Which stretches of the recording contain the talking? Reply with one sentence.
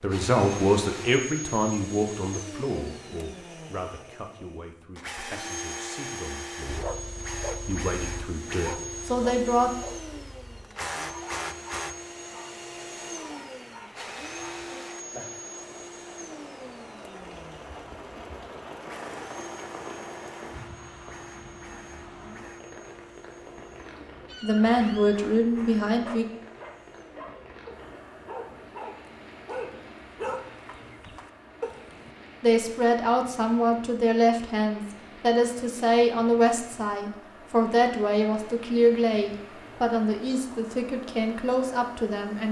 You can hear the talking from 0.0 to 6.9 s, from 7.7 to 9.7 s, from 24.4 to 26.2 s and from 32.4 to 42.4 s.